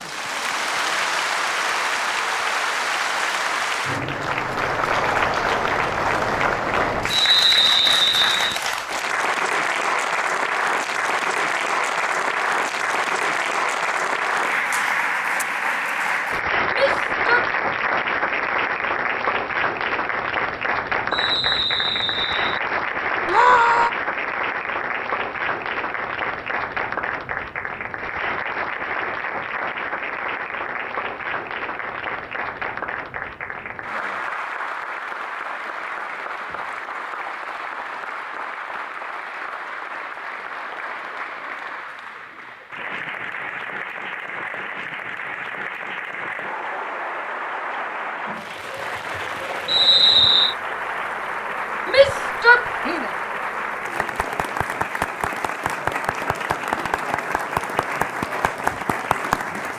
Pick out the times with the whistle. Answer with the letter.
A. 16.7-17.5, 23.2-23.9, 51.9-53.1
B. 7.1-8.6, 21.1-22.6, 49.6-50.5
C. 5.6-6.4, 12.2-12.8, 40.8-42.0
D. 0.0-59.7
B.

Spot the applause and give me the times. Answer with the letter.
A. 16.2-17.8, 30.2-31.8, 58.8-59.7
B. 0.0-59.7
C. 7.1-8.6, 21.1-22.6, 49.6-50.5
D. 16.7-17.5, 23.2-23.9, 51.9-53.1
B.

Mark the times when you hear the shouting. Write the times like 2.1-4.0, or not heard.
16.7-17.5, 23.2-23.9, 51.9-53.1.